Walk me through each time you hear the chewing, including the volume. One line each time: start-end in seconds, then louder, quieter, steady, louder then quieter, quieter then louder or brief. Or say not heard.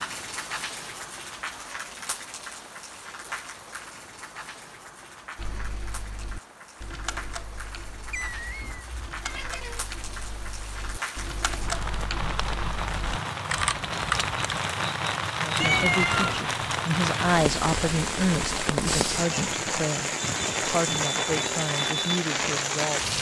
not heard.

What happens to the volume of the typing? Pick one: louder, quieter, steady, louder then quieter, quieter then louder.
quieter then louder.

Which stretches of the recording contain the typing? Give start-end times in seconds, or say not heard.
5.3-14.6.